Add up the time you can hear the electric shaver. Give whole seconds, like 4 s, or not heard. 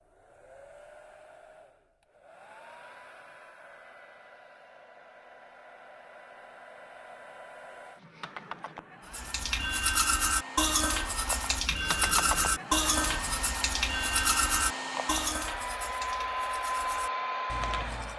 not heard.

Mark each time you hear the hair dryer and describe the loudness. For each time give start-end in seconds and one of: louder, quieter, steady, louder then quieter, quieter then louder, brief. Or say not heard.
0.0-18.1 louder.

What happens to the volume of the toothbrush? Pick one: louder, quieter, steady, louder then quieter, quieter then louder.
quieter.